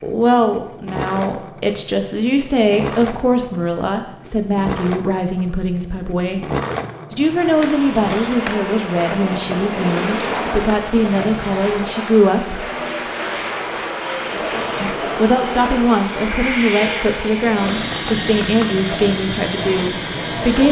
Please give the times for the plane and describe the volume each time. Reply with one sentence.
You can hear the plane from 7.2 to 20.6 s, at a steady volume.